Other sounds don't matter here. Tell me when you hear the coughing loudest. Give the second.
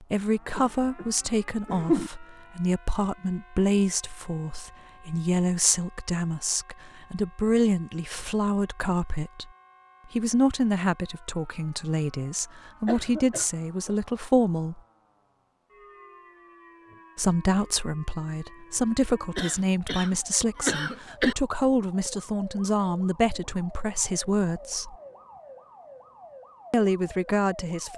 2 s.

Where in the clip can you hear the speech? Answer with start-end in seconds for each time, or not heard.
0.0-9.5, 10.1-14.8, 17.1-24.9, 26.7-27.9.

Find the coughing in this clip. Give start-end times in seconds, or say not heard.
0.6-2.1, 12.8-13.9, 19.4-21.4.